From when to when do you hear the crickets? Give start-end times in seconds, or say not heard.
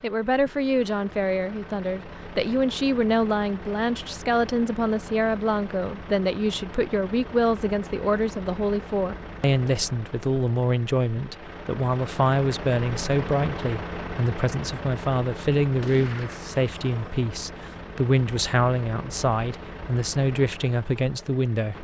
not heard.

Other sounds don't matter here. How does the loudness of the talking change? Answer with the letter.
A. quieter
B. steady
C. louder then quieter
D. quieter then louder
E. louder
B.